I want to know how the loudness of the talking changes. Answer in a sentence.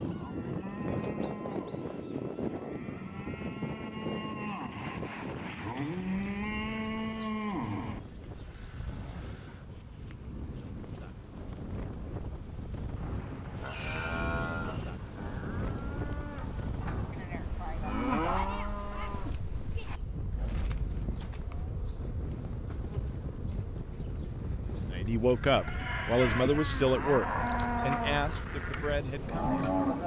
The loudness of the talking goes down.